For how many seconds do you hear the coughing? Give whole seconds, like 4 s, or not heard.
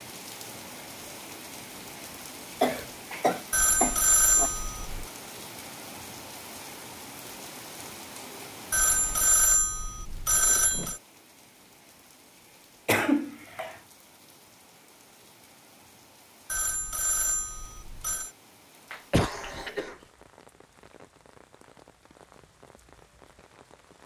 4 s.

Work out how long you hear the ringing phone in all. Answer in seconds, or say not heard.
6 s.